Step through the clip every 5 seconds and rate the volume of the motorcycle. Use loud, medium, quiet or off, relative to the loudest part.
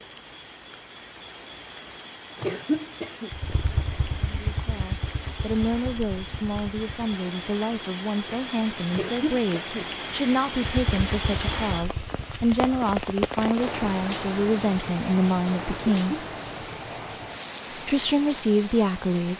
loud, medium, loud, off.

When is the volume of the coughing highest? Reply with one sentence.
The loudest moment of the coughing is at 3 seconds.